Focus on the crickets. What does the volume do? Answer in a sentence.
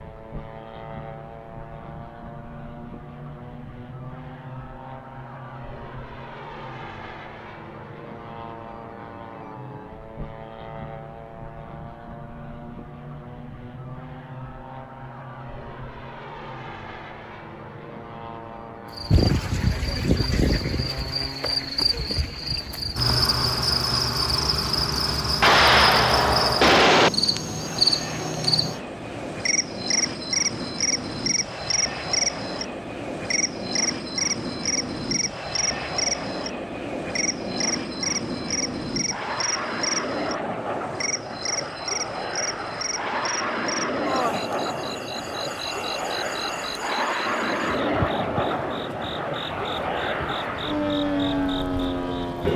The volume of the crickets goes down.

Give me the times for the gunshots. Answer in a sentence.
The gunshots can be heard from 25.4 to 27.1 s.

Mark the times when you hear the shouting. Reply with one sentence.
You can't hear the shouting here.